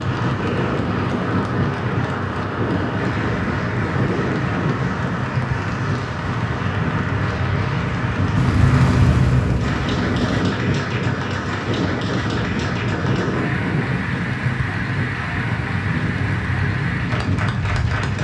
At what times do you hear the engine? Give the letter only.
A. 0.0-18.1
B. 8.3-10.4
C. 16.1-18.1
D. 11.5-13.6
B.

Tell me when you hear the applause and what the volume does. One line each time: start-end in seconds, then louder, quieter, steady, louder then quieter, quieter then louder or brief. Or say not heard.
0.0-18.1 steady.